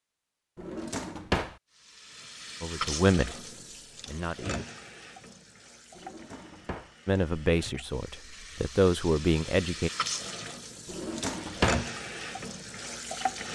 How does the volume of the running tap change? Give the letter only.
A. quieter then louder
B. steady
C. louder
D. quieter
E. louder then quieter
A.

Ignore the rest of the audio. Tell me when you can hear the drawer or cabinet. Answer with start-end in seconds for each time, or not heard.
0.6-1.6, 6.0-7.0, 10.8-11.8.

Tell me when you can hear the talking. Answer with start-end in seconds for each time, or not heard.
2.6-3.4, 4.0-4.7, 7.0-9.9.